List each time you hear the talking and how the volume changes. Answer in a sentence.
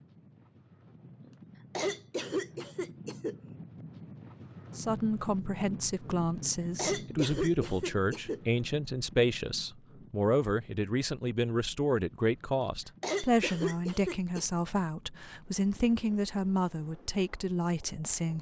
You can hear the talking from 4.8 to 18.3 s, at a steady volume.